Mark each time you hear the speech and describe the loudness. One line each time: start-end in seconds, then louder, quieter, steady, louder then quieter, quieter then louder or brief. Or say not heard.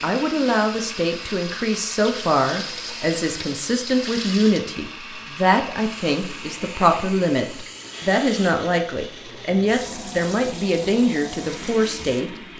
0.0-12.5 steady.